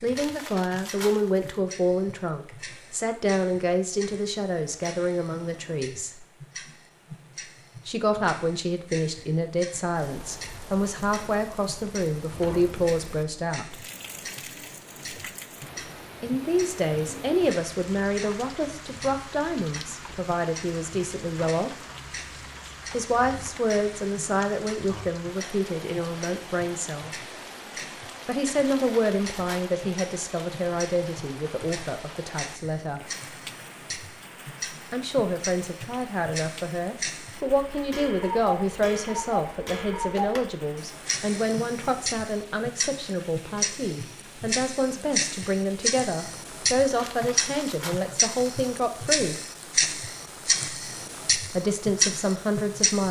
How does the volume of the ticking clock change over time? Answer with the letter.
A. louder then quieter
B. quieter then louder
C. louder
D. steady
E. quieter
C.